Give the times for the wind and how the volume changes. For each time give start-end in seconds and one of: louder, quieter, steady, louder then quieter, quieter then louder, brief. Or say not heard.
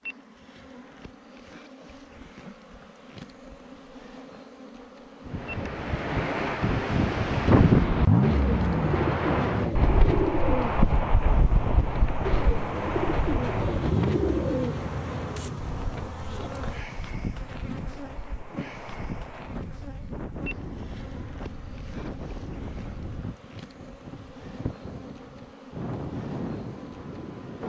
5.2-27.6 quieter.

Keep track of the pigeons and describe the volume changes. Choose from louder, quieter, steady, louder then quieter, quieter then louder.
quieter.